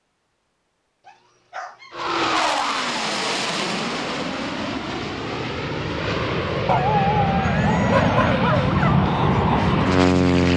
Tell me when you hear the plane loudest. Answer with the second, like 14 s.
10 s.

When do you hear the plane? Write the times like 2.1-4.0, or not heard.
1.9-10.5.